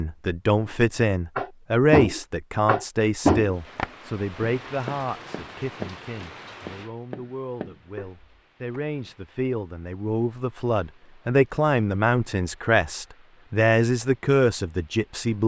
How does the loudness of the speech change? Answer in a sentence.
The volume of the speech goes down, then up.